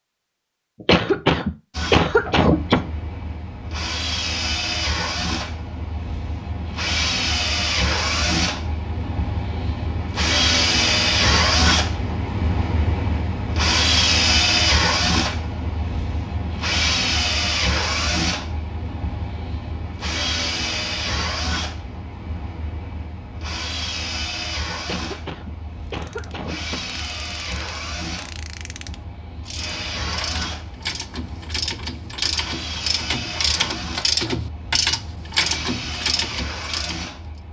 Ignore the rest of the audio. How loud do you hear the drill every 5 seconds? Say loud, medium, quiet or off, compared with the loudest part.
medium, medium, loud, medium, medium, quiet, quiet, quiet.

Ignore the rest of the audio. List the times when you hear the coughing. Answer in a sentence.
The coughing can be heard from 0.8 to 2.9 s and from 24.8 to 26.9 s.